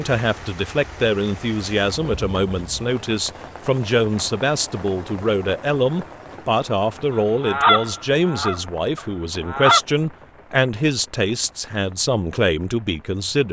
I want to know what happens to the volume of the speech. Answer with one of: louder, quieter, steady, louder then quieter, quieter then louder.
steady.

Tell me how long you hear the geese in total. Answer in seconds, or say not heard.
3 s.